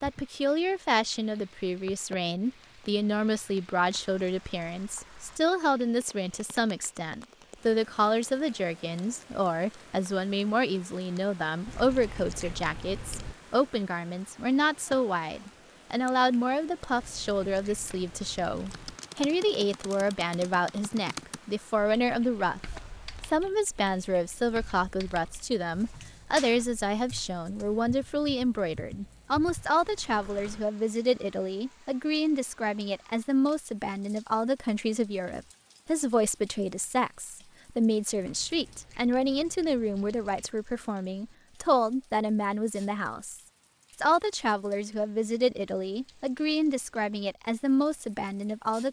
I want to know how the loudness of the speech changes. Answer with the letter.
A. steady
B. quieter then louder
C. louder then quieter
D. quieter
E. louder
A.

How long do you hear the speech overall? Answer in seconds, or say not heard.
48 s.